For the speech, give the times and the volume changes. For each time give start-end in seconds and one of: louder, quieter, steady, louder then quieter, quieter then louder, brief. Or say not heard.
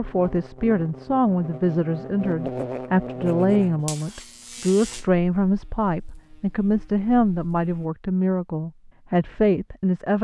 0.0-10.1 steady.